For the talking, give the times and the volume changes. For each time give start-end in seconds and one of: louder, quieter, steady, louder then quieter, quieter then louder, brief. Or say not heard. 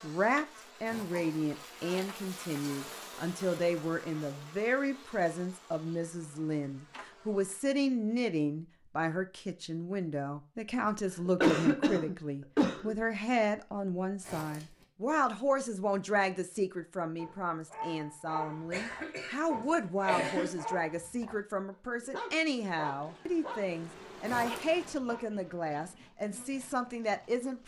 0.0-27.6 steady.